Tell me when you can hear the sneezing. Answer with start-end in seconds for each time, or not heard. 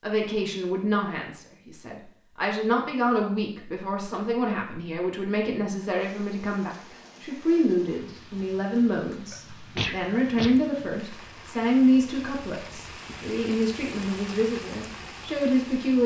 9.3-10.6.